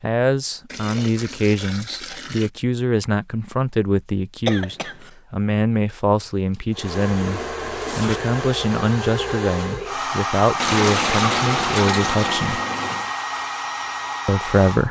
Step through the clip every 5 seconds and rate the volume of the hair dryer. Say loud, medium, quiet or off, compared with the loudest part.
off, loud, loud.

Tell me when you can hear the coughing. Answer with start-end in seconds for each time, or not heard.
4.5-5.1.